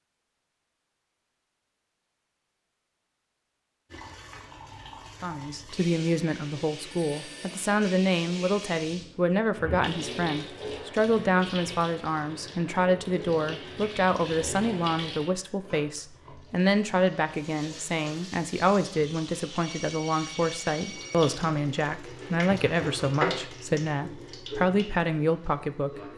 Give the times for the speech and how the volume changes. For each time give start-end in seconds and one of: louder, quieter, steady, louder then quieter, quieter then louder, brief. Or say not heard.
5.2-26.1 steady.